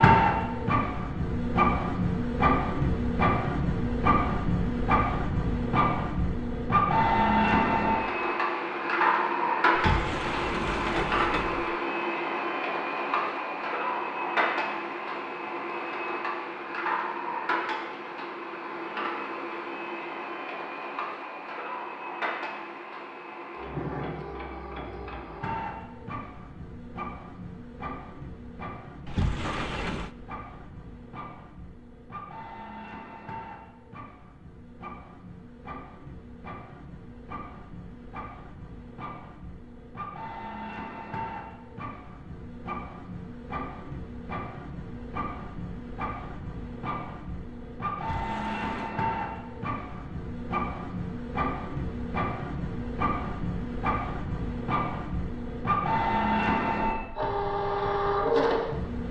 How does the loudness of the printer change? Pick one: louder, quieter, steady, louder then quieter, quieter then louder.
quieter then louder.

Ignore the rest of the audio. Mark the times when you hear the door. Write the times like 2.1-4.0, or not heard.
9.7-11.8, 29.1-30.1, 48.0-48.9.